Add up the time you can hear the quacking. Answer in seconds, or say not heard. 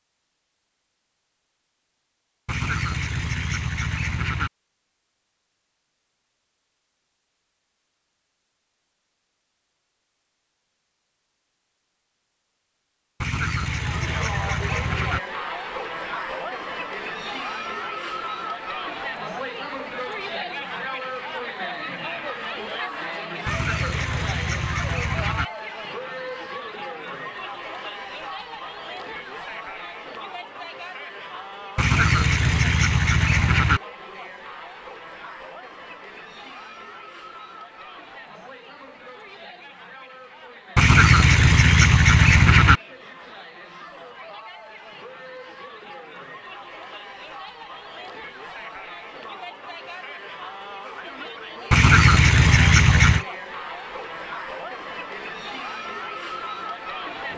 12 s.